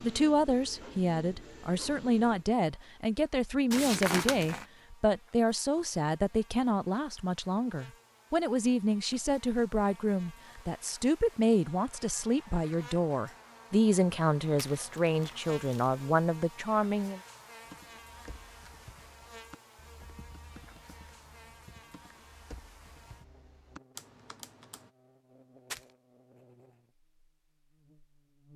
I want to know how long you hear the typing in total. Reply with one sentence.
The typing can be heard for 7 seconds in total.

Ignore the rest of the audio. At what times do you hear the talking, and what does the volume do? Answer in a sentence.
You can hear the talking from 0.0 to 17.2 s, at a steady volume.